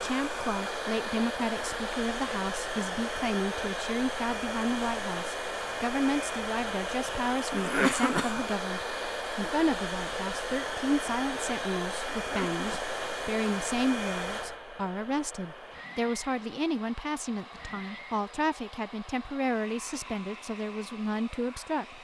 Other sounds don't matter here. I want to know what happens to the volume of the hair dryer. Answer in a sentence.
The volume of the hair dryer goes down.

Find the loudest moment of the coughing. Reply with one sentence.
The volume of the coughing peaks at 8 seconds.